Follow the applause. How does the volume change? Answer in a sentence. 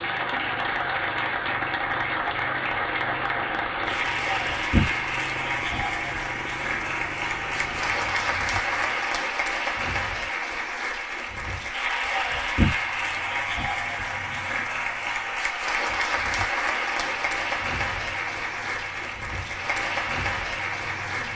The volume of the applause stays about the same.